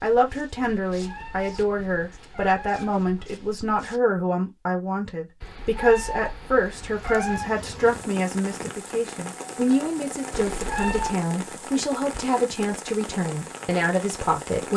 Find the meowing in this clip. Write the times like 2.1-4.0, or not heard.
0.9-3.0, 5.4-7.5, 10.3-11.2.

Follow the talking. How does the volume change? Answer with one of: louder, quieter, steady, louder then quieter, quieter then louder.
steady.